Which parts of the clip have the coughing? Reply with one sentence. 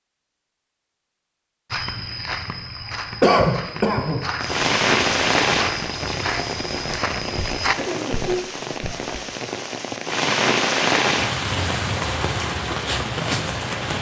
The coughing can be heard from 3.2 to 4.2 s and from 7.6 to 8.4 s.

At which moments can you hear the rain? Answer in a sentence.
You can hear the rain from 4.4 to 13.9 s.